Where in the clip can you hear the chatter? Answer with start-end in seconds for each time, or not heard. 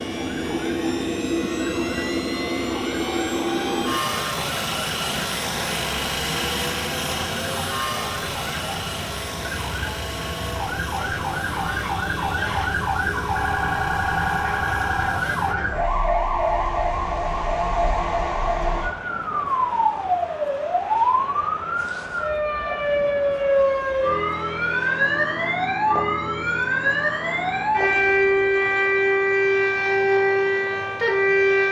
not heard.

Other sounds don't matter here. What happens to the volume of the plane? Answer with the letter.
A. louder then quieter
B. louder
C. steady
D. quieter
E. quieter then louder
D.